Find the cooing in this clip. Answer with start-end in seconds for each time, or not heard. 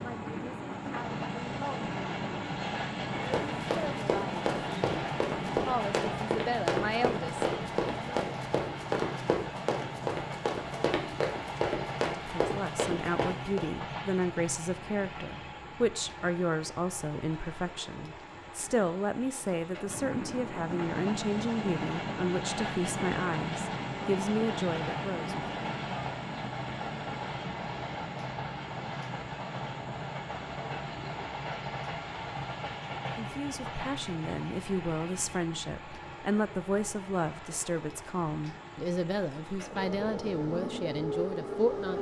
not heard.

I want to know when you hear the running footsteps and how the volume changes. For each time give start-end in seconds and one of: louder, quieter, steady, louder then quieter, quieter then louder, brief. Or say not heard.
3.3-13.7 steady.